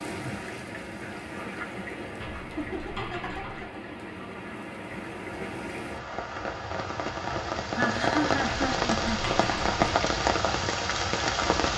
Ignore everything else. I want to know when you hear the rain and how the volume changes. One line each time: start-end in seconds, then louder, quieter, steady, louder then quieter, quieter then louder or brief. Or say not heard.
0.0-11.7 louder.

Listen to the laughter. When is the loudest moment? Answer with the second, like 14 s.
8 s.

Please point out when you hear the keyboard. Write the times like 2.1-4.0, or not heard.
2.2-3.7, 8.4-10.0.